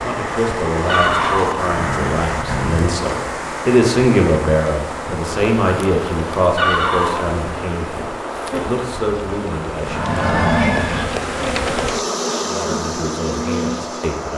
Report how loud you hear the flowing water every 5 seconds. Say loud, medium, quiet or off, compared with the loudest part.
loud, loud, medium.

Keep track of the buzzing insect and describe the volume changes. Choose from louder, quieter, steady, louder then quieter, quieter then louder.
louder.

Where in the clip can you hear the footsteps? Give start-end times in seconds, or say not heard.
not heard.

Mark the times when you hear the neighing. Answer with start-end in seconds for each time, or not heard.
0.8-2.9, 6.5-7.3, 9.8-11.1.